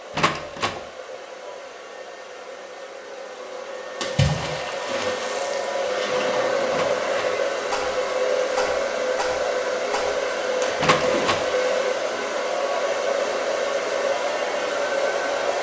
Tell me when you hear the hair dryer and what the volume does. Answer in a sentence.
You can hear the hair dryer from 0.0 to 15.5 s, getting louder.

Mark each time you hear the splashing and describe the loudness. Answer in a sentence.
You can hear the splashing from 4.0 to 11.9 s, at a steady volume.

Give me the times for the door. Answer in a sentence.
The door can be heard from 0.1 to 0.8 s, from 6.7 to 7.4 s and from 10.8 to 11.5 s.